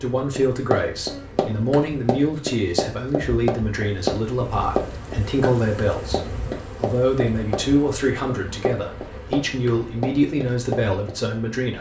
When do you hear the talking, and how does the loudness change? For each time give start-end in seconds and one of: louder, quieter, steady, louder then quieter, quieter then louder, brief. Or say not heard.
0.0-11.7 steady.